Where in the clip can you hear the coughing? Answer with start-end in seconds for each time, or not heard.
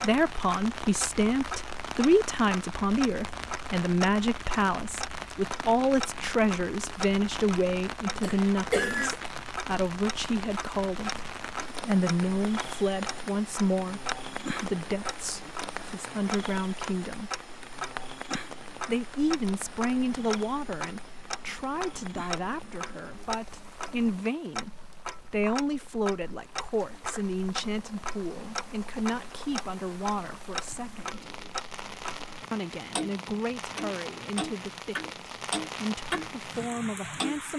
8.2-9.2.